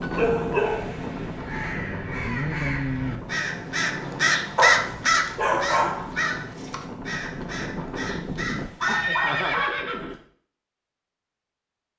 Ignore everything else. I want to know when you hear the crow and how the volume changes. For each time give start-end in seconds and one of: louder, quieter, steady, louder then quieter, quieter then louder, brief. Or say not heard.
0.6-9.2 louder then quieter.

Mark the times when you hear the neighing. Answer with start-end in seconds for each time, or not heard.
8.8-10.2.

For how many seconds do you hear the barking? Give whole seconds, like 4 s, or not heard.
4 s.